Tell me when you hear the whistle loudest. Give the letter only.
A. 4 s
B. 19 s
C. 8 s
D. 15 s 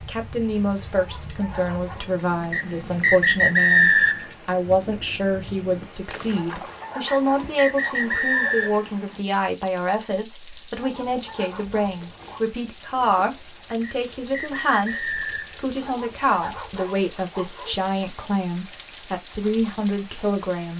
A.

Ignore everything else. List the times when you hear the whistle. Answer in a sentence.
You can hear the whistle from 2.5 to 4.2 s, from 7.0 to 8.8 s and from 13.8 to 15.6 s.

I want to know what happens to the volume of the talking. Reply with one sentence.
The volume of the talking stays about the same.